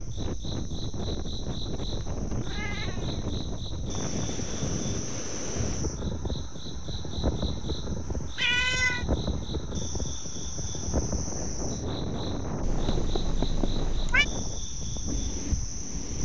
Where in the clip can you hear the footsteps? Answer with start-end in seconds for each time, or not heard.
not heard.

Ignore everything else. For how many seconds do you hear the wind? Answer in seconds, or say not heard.
16 s.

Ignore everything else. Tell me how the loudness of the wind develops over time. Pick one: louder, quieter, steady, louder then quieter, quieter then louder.
steady.